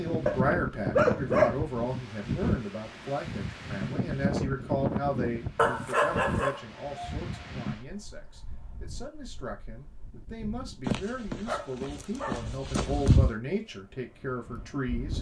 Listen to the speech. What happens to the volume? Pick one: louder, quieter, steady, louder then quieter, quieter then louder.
quieter then louder.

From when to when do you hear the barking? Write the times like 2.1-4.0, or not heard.
0.2-1.6, 5.5-7.5, 10.8-13.3.